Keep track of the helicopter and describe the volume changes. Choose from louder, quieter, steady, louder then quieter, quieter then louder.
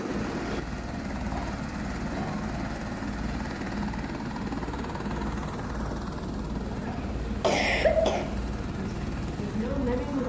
steady.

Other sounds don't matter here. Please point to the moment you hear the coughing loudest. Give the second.
8 s.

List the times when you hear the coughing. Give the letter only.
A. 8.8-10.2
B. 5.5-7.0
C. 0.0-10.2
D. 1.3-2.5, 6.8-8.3
D.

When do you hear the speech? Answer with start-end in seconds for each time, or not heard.
8.8-10.2.